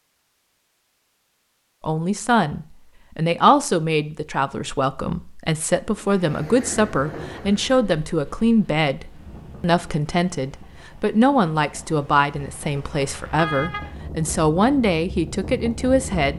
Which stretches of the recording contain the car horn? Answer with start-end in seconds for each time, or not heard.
12.9-13.9.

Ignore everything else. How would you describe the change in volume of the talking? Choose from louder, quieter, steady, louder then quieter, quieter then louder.
steady.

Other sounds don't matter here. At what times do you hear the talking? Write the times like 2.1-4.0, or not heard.
1.8-16.3.